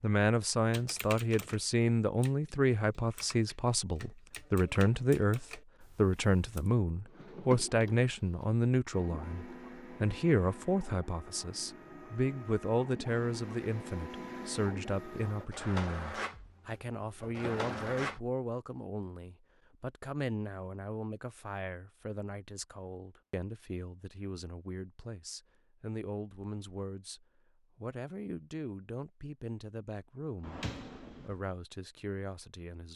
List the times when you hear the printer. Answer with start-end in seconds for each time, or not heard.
8.9-18.2.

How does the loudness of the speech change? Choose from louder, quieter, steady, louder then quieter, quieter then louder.
quieter.